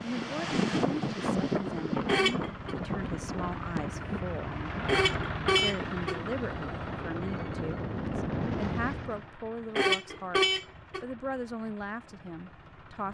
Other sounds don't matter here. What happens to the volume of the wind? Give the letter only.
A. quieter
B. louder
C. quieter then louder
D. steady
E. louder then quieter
C.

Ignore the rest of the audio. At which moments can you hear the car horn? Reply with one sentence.
You can hear the car horn from 2.0 to 2.8 s, from 4.8 to 6.2 s and from 9.8 to 11.1 s.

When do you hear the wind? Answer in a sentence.
The wind can be heard from 0.0 to 9.2 s.